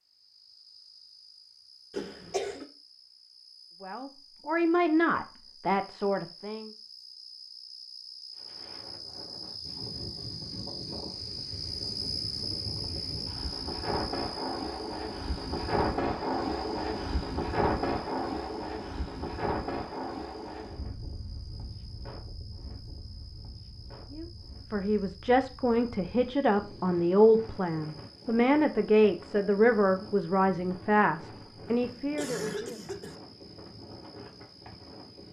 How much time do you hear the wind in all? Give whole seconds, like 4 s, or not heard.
27 s.